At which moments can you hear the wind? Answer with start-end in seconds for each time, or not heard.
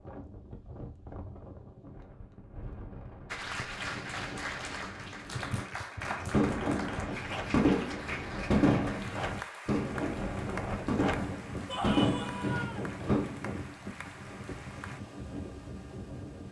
0.0-16.4.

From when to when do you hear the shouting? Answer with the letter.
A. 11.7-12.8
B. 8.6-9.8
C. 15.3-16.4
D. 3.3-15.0
A.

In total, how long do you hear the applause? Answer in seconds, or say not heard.
12 s.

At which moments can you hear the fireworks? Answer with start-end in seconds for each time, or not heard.
6.0-13.3.